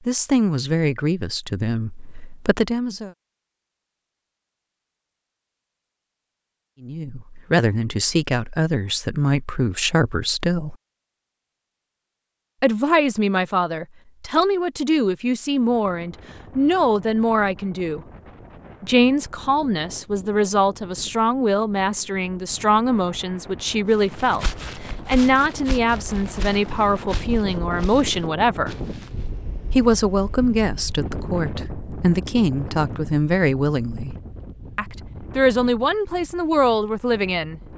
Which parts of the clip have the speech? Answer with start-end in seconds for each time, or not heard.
0.1-3.1, 6.8-10.8, 12.6-18.0, 18.8-28.8, 29.7-34.1, 34.8-37.6.